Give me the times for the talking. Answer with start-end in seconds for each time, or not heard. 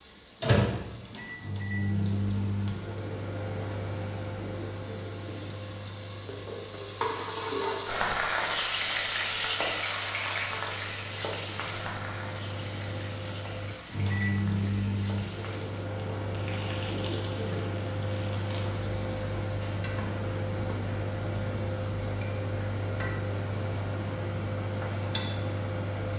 not heard.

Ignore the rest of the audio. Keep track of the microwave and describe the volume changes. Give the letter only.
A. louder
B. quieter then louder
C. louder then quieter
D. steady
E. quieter
B.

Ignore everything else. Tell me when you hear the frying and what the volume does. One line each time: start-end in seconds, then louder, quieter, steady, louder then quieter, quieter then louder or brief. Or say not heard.
0.0-26.1 louder then quieter.